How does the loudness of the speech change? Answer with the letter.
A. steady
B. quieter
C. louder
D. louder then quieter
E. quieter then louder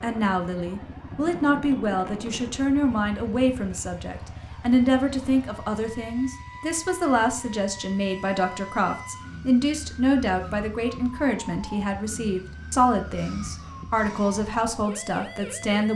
A.